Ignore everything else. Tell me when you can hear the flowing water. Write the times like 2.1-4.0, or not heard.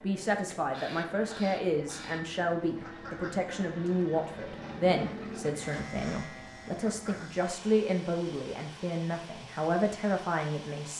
not heard.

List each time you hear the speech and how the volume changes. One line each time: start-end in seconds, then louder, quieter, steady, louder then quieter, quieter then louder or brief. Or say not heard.
0.0-10.9 steady.